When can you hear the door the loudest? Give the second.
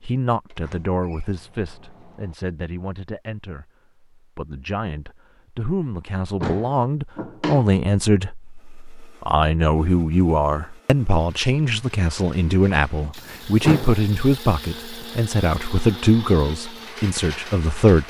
14 s.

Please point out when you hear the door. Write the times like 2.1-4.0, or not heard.
0.5-2.4, 6.4-7.7, 13.6-14.1.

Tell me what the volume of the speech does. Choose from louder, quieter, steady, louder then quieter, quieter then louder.
louder.